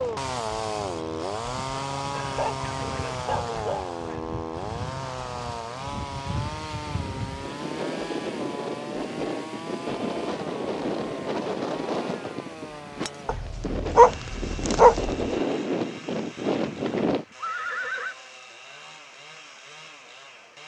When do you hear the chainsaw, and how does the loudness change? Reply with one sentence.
The chainsaw can be heard from 0.0 to 20.6 s, getting quieter.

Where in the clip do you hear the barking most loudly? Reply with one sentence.
The volume of the barking peaks at 14 seconds.